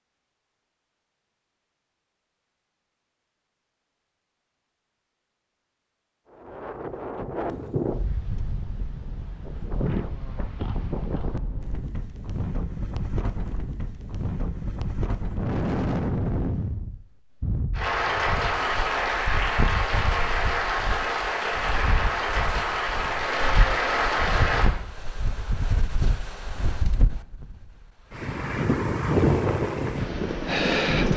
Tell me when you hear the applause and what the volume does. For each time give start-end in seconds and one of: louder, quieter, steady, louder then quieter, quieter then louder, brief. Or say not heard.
17.7-24.7 steady.